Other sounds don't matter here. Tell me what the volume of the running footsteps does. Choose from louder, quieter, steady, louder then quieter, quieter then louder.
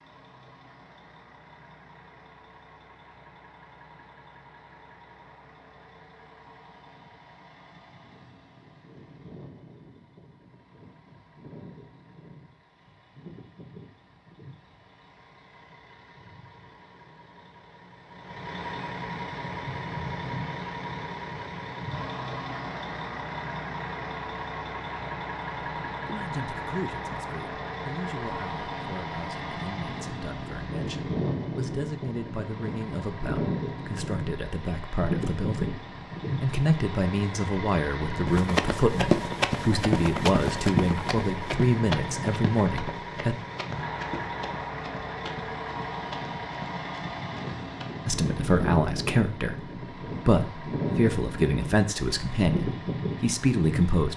quieter.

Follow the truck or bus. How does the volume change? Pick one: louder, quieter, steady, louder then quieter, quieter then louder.
louder.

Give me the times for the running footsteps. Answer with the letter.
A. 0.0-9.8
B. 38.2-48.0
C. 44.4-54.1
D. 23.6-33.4
B.